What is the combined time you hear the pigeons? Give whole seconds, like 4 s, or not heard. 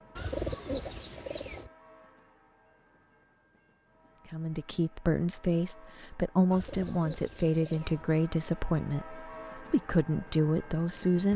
3 s.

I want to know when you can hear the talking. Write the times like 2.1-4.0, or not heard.
4.3-11.3.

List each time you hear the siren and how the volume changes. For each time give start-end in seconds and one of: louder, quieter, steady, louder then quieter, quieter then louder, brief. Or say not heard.
not heard.